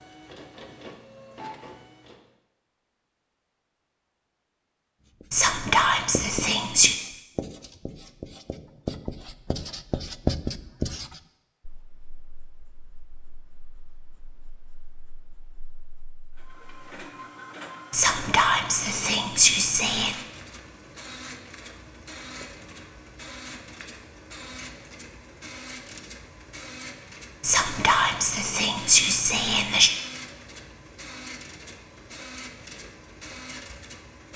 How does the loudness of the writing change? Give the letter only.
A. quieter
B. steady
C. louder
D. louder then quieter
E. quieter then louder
D.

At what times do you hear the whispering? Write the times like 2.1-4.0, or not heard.
5.3-7.0, 17.9-20.1, 27.4-29.9.